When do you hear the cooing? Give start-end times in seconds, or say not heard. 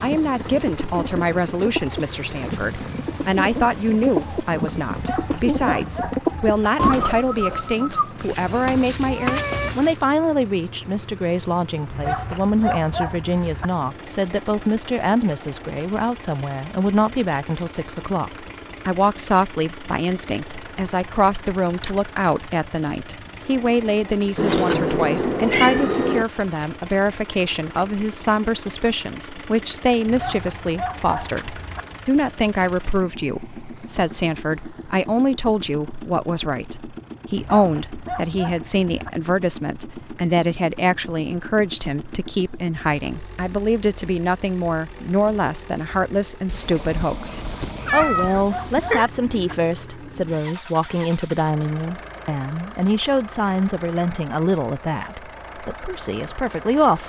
0.0-8.9.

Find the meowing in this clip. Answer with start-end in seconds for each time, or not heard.
8.2-9.9, 24.4-26.2, 46.5-49.1.